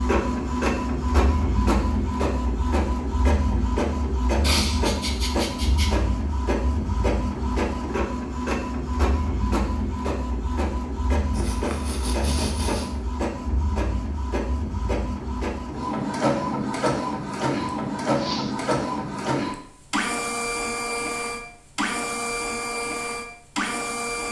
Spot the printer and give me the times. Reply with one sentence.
The printer can be heard from 0.0 to 24.2 s.